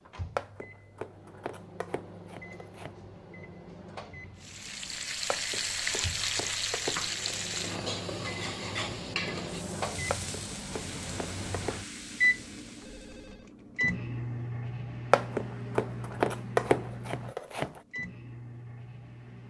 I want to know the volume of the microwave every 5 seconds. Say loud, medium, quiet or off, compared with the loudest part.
quiet, medium, loud, medium.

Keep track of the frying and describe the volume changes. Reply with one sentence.
The loudness of the frying goes down.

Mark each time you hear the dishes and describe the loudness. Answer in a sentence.
You can't hear the dishes here.